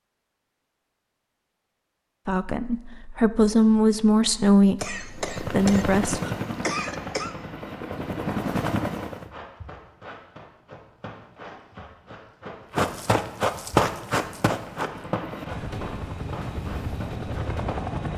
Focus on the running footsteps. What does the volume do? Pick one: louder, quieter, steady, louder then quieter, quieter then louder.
louder then quieter.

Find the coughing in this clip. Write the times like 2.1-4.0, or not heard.
4.8-7.3.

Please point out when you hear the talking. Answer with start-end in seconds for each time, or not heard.
2.2-6.2.